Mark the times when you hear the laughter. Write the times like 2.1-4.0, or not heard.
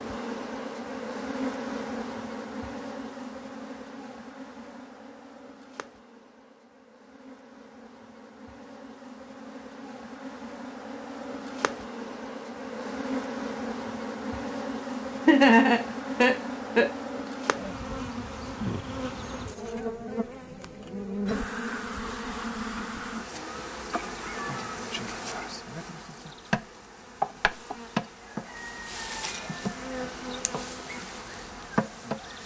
15.2-16.9.